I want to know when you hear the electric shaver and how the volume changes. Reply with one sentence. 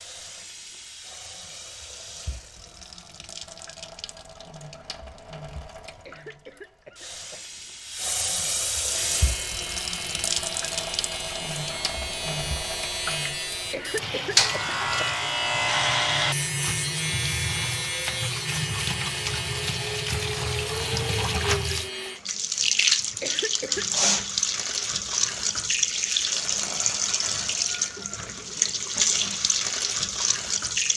You can hear the electric shaver from 8.9 to 22.2 s, getting louder then quieter.